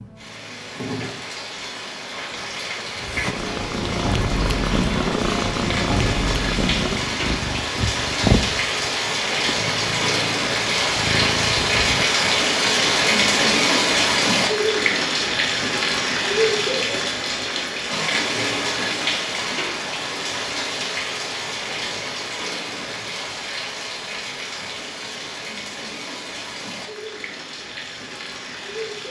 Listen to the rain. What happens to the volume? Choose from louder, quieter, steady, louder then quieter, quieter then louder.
louder then quieter.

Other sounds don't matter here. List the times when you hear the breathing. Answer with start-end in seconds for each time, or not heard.
not heard.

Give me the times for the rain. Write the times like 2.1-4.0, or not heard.
0.0-29.0.